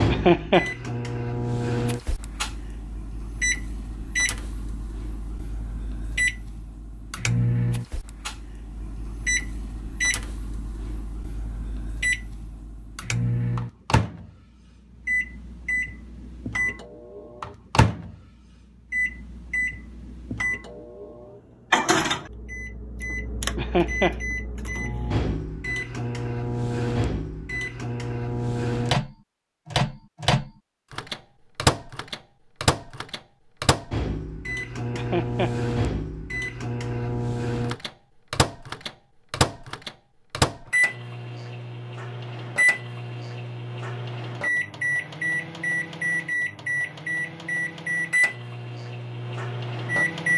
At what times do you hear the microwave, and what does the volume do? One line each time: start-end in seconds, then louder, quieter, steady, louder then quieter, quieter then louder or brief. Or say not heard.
0.0-50.3 steady.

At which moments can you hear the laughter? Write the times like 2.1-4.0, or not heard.
0.1-0.7, 23.6-24.2, 34.9-35.5.